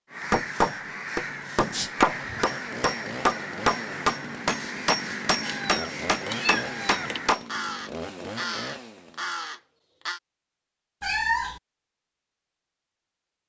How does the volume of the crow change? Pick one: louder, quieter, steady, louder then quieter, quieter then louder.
steady.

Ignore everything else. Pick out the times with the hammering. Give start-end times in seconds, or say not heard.
0.3-7.5.